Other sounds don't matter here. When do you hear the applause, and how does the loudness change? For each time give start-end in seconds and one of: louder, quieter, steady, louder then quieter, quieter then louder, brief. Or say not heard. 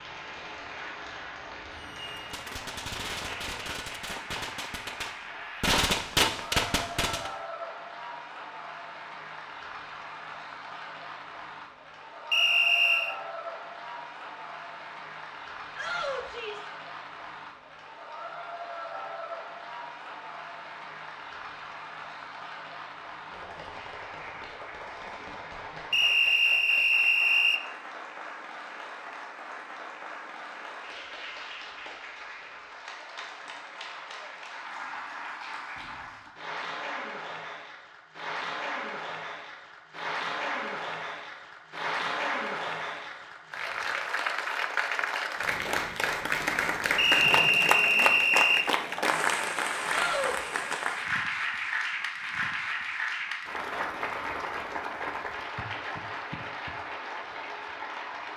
0.0-58.3 louder.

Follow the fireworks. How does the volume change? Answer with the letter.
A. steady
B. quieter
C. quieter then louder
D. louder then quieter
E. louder
E.